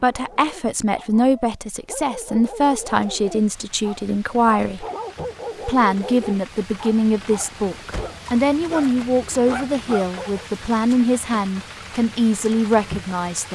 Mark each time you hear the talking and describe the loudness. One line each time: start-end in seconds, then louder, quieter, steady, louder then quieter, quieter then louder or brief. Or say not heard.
0.0-4.8 steady
5.7-13.5 steady.